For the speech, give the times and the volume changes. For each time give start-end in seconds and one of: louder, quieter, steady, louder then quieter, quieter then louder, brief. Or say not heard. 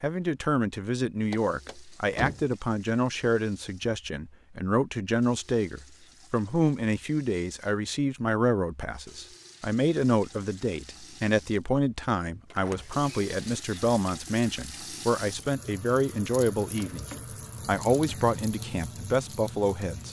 0.0-20.0 steady.